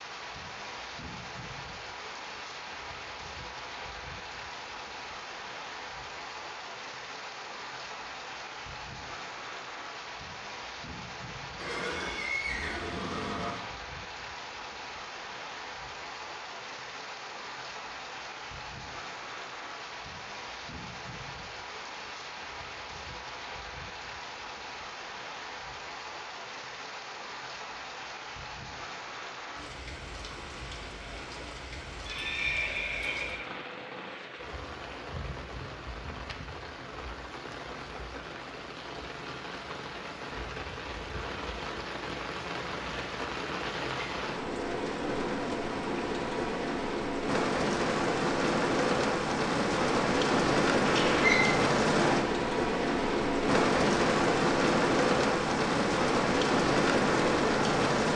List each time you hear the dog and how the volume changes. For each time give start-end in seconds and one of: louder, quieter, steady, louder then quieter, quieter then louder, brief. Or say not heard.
not heard.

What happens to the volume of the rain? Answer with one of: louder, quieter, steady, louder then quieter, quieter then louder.
louder.